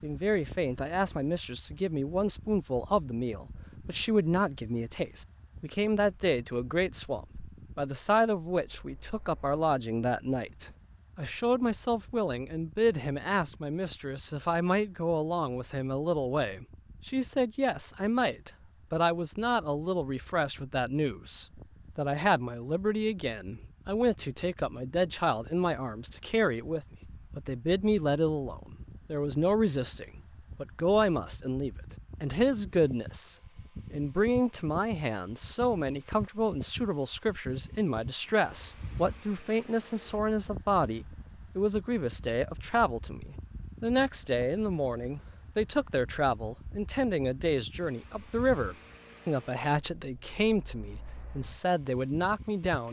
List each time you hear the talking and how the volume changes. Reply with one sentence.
You can hear the talking from 0.0 to 52.8 s, at a steady volume.